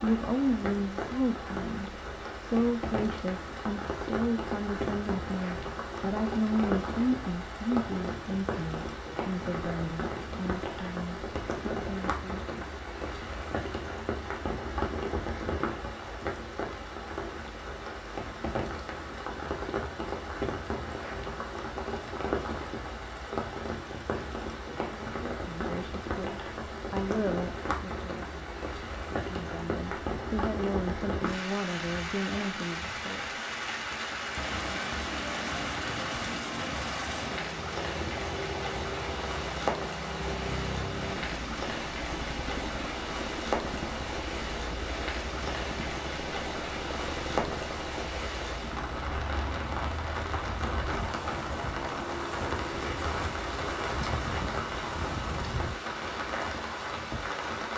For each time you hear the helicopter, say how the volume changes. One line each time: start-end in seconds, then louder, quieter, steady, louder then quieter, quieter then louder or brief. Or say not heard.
34.4-55.8 steady.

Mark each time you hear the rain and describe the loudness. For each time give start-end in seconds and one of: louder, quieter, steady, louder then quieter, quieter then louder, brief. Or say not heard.
0.0-57.7 steady.